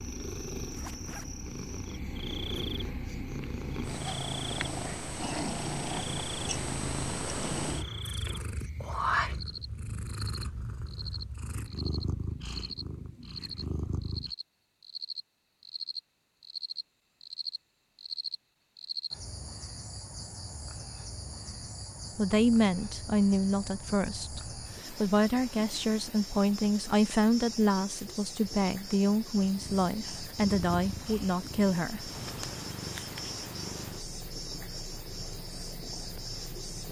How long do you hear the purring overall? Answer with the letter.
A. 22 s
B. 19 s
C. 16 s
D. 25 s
A.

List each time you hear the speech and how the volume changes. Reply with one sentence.
You can hear the speech from 22.1 to 32.1 s, at a steady volume.